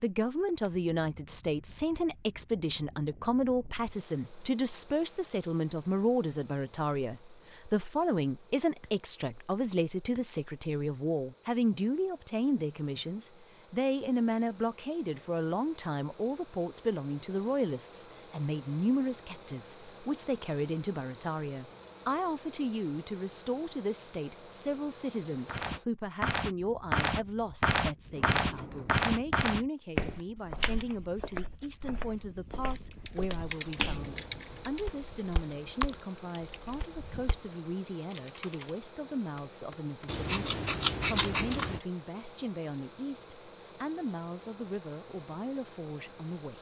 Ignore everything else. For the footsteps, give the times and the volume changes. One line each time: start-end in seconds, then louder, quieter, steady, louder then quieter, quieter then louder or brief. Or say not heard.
25.4-37.4 quieter.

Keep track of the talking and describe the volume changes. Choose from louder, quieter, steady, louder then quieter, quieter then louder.
quieter.